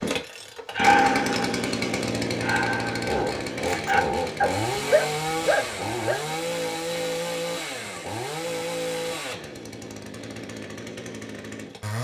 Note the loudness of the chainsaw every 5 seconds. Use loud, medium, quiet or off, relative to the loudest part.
loud, loud, medium.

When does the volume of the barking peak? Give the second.
1 s.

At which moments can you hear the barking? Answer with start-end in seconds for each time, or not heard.
0.8-1.6, 2.4-6.2.